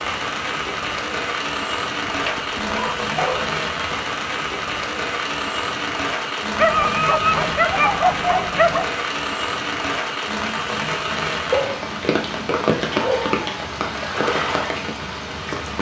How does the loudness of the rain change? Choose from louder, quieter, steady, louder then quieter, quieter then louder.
steady.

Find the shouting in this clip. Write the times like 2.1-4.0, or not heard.
not heard.